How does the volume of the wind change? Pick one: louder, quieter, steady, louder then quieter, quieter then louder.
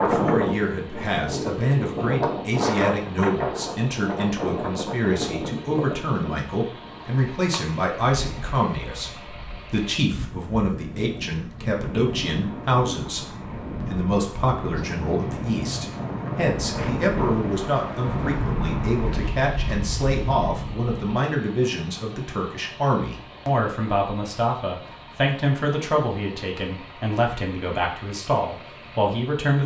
quieter then louder.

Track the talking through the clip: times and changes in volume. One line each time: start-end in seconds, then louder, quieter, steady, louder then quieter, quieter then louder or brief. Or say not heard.
0.1-29.6 steady.